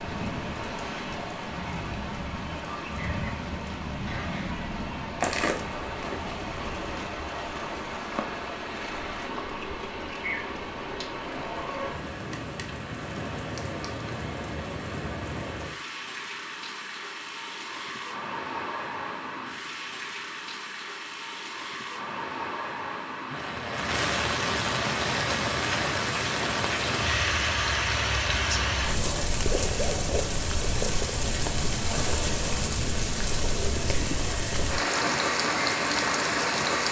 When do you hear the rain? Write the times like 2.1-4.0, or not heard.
0.0-36.8.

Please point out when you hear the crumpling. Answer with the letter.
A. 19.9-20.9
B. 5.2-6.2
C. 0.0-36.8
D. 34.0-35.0
B.